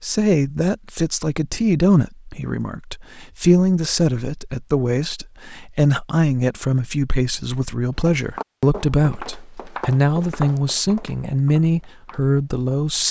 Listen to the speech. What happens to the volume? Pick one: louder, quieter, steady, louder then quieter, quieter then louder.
steady.